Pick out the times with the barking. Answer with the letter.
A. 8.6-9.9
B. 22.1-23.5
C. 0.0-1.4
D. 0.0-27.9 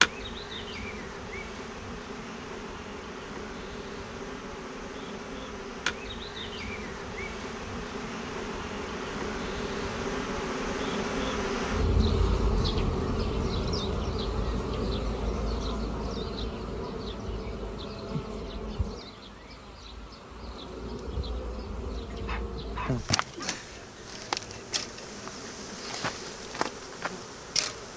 B.